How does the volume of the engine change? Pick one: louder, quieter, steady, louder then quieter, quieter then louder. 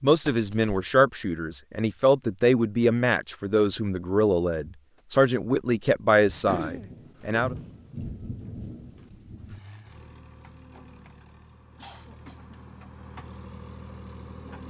louder.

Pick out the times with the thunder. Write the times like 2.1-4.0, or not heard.
6.2-9.6.